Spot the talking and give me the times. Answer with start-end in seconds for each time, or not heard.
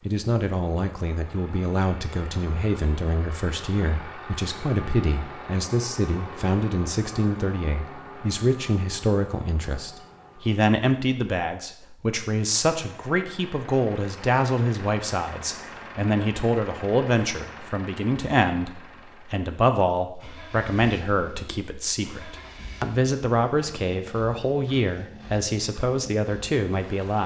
0.1-27.2.